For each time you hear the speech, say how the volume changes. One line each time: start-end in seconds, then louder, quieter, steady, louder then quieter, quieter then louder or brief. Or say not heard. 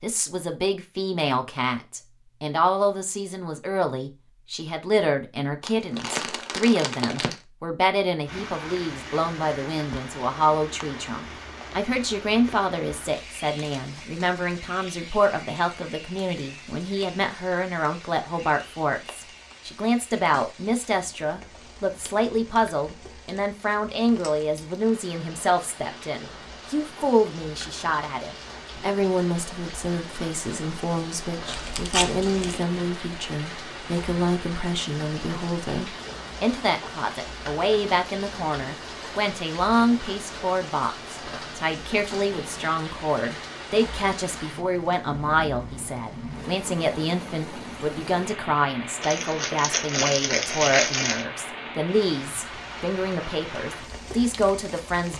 0.0-55.1 steady.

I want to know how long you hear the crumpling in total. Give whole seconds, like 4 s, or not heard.
5 s.